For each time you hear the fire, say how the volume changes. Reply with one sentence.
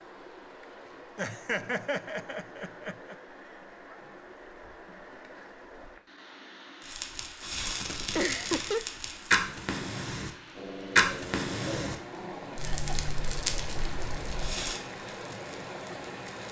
The fire can be heard from 6.8 to 16.4 s, getting louder then quieter.